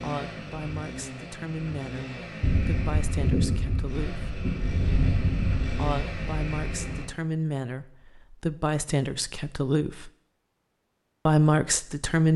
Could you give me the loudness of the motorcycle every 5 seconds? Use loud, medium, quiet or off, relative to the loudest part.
loud, loud, off.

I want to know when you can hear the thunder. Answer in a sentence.
The thunder can be heard from 2.4 to 7.0 s.